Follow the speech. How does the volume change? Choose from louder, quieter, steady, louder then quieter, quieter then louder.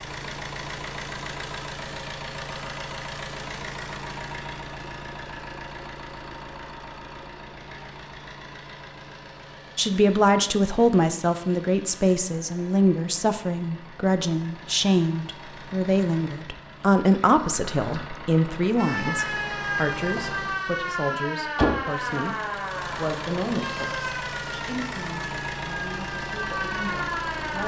quieter.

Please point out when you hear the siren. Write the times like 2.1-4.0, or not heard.
18.8-27.6.